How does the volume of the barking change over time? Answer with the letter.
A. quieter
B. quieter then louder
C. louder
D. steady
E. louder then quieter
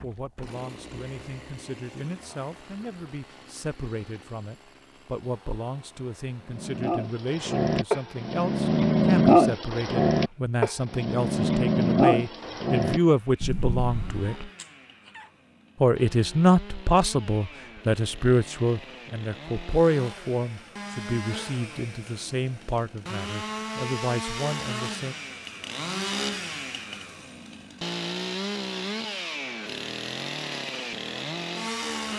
E.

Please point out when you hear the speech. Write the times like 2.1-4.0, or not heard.
0.0-14.5, 15.8-25.1.